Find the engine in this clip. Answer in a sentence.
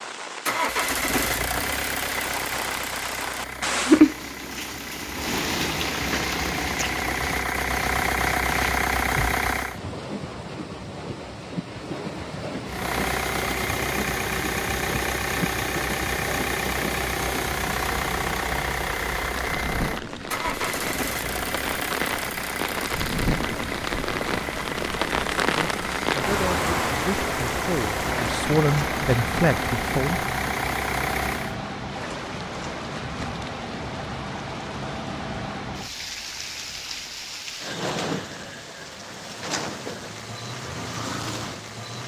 The engine can be heard from 0.0 to 9.8 s and from 12.7 to 31.6 s.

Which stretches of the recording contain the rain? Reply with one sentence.
The rain can be heard from 0.0 to 42.0 s.